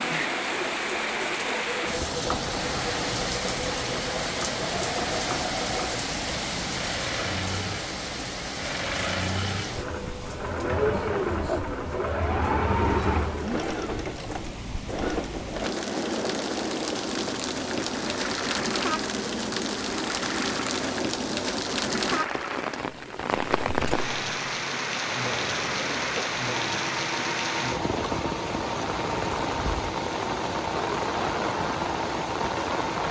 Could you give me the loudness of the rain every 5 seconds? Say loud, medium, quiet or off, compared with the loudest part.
loud, loud, medium, loud, loud, loud, loud.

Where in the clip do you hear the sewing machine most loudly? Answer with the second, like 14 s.
13 s.